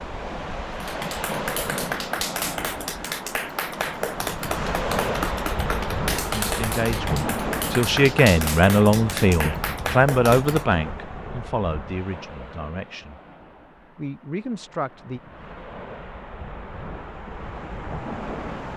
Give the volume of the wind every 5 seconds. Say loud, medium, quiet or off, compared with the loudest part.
loud, loud, medium, medium.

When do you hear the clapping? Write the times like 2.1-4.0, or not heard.
0.8-10.8.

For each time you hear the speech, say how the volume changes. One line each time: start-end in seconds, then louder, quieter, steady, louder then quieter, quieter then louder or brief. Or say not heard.
6.3-13.2 louder then quieter
13.9-15.2 brief.